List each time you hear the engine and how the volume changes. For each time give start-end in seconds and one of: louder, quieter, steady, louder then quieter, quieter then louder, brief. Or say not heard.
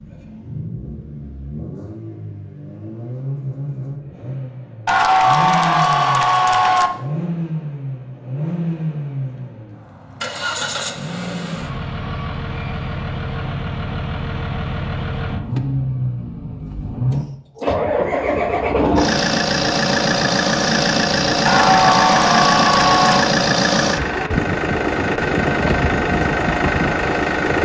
0.0-27.5 louder.